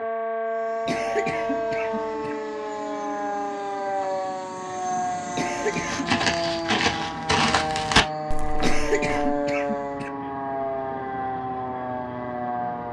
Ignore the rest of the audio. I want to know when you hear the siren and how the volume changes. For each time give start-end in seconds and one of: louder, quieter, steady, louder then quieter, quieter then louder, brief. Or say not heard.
0.0-12.8 steady.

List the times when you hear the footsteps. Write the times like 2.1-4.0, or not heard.
5.7-9.4.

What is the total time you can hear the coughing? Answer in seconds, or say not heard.
4 s.